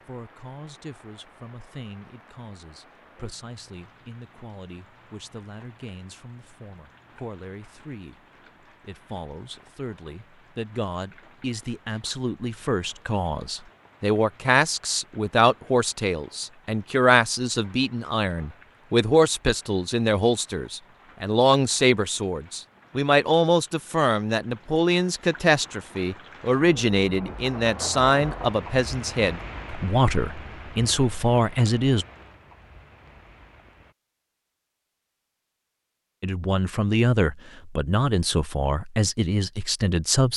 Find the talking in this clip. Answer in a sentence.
The talking can be heard from 0.1 to 32.0 s and from 36.2 to 40.3 s.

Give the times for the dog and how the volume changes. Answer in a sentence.
You can't hear the dog here.